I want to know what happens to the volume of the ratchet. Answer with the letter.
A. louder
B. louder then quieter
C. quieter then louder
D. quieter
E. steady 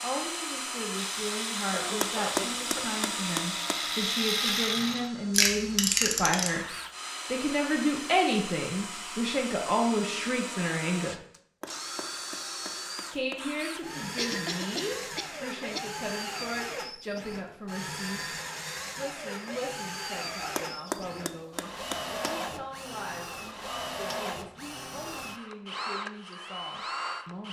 A.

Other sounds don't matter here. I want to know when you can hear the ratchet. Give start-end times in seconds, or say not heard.
0.9-6.7.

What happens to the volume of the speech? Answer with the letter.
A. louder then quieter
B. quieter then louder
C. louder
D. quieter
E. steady
A.